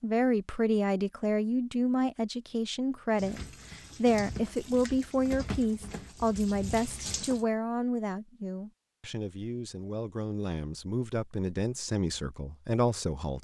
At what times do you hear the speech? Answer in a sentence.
The speech can be heard from 0.0 to 13.3 s.